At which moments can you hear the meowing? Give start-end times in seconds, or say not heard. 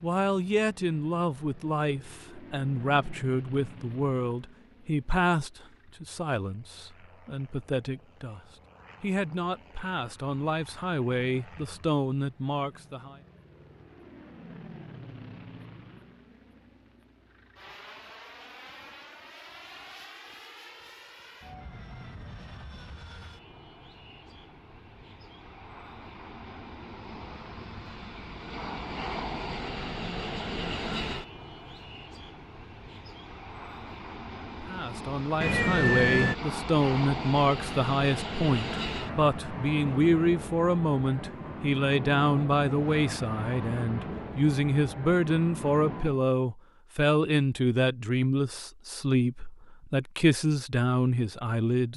35.4-36.4.